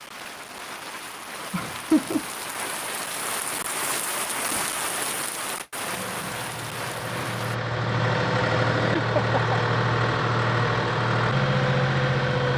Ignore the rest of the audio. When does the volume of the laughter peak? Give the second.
2 s.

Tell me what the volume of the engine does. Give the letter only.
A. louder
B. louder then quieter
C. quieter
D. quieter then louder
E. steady
A.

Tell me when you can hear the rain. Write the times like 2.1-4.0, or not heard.
0.0-7.6.